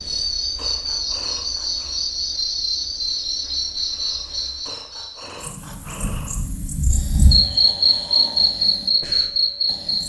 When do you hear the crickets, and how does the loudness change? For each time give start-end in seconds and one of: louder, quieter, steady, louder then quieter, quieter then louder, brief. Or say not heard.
0.0-10.0 quieter then louder.